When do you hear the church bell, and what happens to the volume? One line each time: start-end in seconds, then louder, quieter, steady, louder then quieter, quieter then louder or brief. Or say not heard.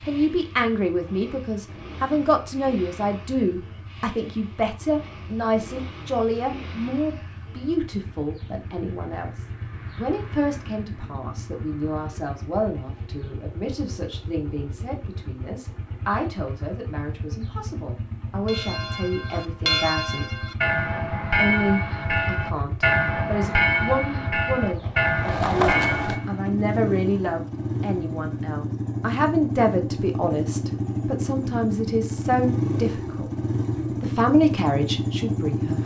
18.4-26.5 steady.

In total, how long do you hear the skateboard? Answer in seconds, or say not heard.
2 s.